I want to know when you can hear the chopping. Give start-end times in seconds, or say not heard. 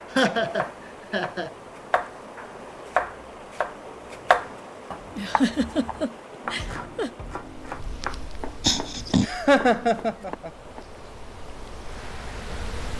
0.0-10.8.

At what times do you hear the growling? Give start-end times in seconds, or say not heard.
8.6-9.2.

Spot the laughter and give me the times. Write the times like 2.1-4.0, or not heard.
0.1-1.5, 5.2-7.1, 9.2-10.5.